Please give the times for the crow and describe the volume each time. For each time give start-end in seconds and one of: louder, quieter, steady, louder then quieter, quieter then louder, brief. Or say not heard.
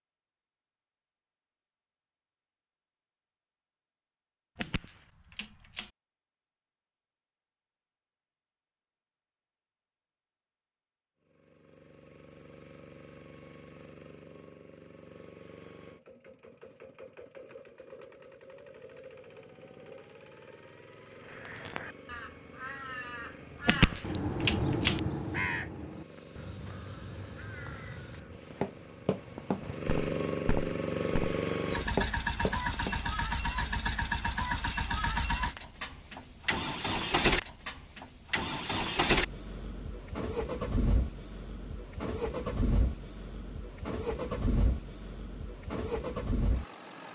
21.1-28.5 louder then quieter.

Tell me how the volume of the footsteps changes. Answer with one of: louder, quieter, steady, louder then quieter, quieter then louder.
louder.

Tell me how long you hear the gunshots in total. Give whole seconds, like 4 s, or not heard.
3 s.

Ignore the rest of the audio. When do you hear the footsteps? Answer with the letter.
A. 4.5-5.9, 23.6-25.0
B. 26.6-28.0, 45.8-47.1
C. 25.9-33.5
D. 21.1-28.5
C.